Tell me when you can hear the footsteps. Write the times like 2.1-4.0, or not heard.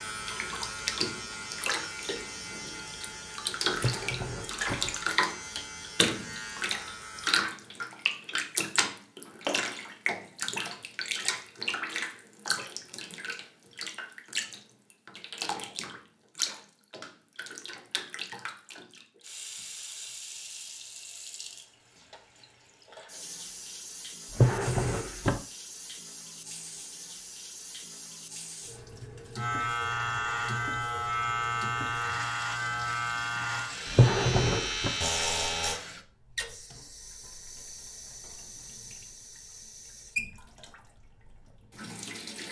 not heard.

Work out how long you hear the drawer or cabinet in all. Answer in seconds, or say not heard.
3 s.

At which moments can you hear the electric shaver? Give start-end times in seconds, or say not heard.
0.0-7.3, 29.4-35.8.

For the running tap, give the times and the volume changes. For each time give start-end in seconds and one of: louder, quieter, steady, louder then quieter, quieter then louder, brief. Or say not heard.
0.1-42.4 quieter.